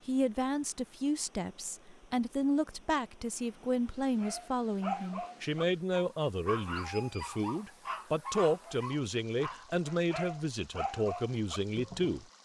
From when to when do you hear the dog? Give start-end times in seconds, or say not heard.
4.2-12.2.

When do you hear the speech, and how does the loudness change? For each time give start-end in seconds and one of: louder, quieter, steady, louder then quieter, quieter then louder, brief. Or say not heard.
0.1-12.2 steady.